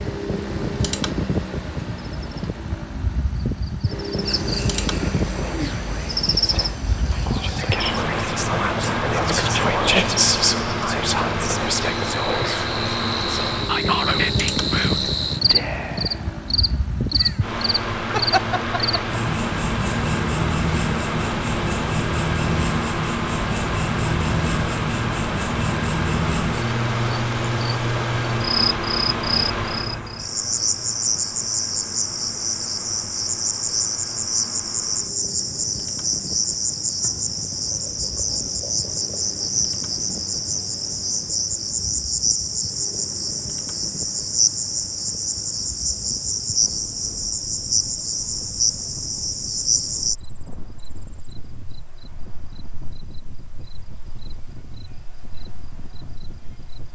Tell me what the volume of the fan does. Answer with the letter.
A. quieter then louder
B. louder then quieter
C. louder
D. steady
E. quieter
E.